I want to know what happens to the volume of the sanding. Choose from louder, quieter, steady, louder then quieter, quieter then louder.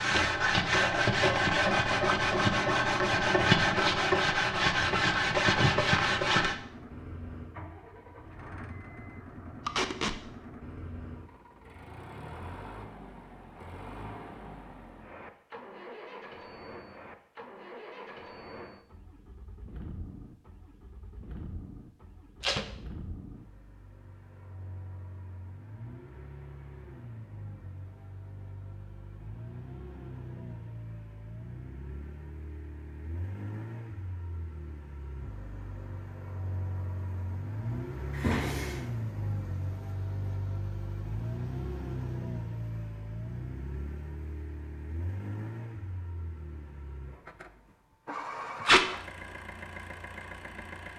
steady.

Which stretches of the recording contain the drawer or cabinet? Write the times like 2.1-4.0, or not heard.
38.1-38.8.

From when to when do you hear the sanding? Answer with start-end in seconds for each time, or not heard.
0.0-6.5.